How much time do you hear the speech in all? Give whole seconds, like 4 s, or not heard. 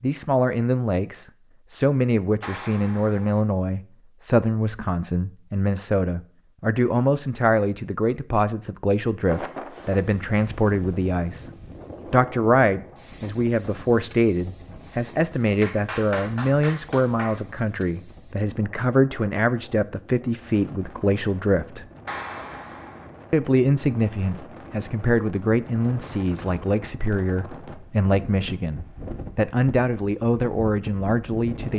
30 s.